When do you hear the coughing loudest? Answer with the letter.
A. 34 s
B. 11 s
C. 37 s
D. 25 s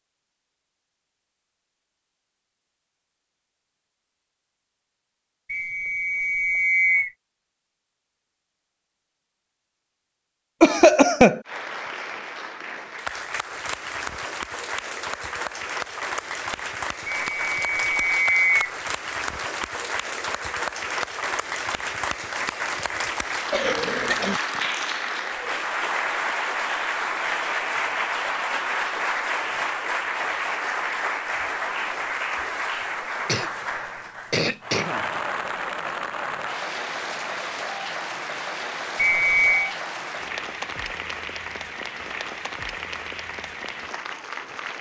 B.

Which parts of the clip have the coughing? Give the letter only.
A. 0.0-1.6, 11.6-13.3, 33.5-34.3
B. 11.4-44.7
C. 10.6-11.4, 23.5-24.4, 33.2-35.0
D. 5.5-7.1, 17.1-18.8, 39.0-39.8
C.